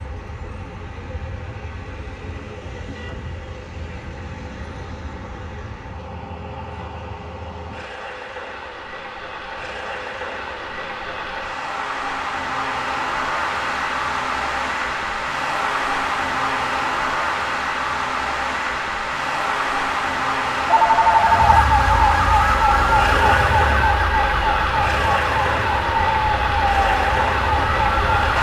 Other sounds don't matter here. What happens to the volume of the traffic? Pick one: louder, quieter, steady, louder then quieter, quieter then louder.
louder.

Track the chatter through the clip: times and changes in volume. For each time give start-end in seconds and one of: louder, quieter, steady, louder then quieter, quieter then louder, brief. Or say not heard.
not heard.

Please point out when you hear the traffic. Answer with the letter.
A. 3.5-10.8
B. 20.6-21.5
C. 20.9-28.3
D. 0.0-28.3
D.